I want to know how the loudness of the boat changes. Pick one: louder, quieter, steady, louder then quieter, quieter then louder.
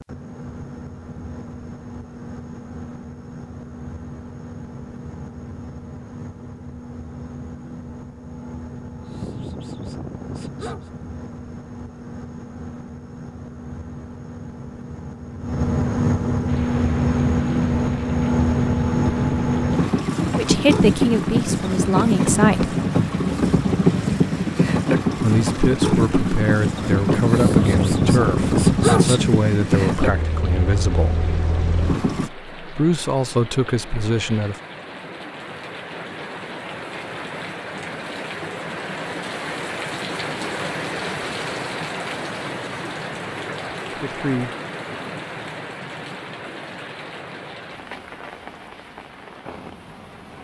louder.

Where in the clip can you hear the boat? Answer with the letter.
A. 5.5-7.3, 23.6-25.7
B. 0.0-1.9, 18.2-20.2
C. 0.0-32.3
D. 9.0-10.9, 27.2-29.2
C.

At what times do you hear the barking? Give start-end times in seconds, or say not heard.
9.0-10.9, 27.2-29.2.